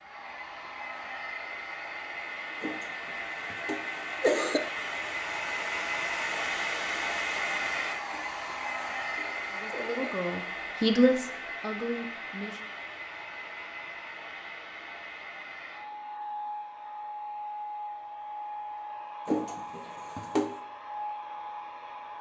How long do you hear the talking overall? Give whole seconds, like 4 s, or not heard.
3 s.